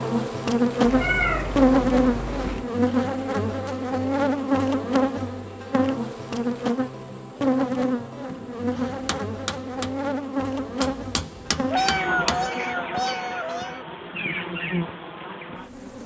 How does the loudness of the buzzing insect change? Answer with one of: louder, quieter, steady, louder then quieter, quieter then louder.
quieter.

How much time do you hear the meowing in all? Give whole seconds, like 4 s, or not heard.
4 s.